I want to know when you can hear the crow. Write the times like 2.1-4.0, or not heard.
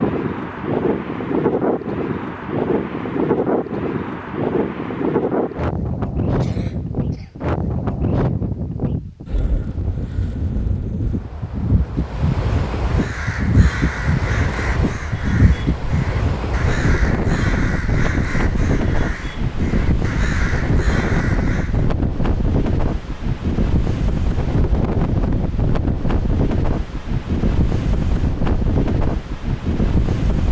12.8-21.9.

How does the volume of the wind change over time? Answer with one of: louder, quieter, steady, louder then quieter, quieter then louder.
steady.